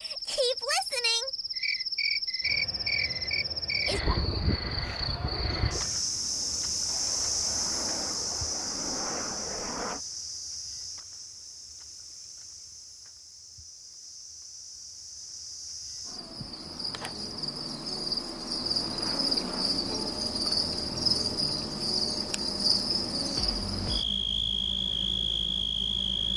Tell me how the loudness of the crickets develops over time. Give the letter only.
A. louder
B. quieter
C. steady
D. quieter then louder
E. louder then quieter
D.